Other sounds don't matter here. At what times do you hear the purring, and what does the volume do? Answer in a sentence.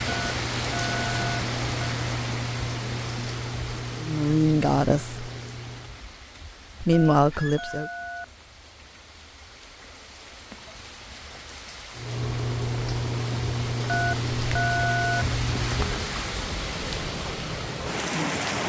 You can hear the purring from 0.0 to 6.0 s, getting quieter; and from 11.9 to 16.1 s, at a steady volume.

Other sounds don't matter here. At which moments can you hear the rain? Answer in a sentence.
The rain can be heard from 0.0 to 18.6 s.